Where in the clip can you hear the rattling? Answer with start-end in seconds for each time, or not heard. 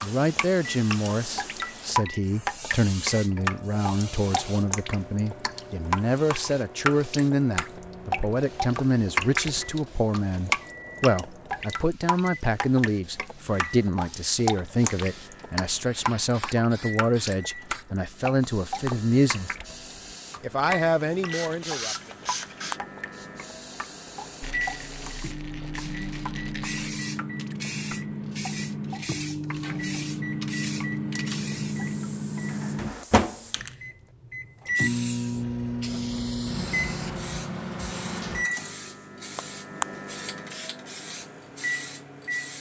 24.4-26.8.